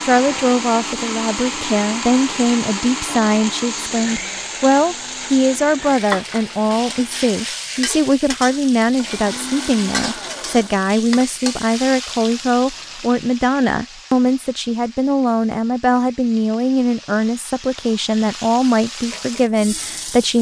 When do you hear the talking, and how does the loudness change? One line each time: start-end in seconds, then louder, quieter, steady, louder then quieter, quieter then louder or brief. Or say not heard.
0.0-20.3 steady.